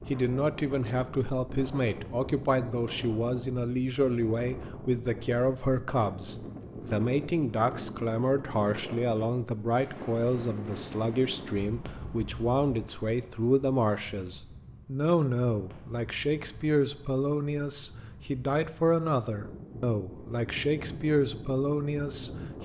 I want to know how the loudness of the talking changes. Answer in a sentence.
The loudness of the talking stays about the same.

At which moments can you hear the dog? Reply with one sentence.
You can't hear the dog here.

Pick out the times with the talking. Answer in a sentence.
You can hear the talking from 0.1 to 22.6 s.